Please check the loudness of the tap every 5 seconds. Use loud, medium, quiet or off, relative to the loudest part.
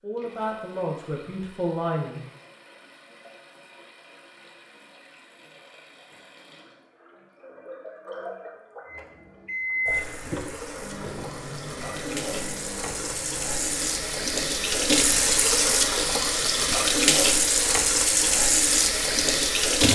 quiet, quiet, medium, loud.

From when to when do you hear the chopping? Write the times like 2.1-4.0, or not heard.
not heard.